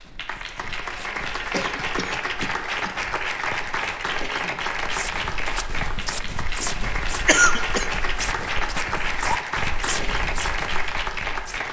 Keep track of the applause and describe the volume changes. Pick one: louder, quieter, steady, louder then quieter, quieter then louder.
steady.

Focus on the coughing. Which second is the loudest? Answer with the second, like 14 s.
7 s.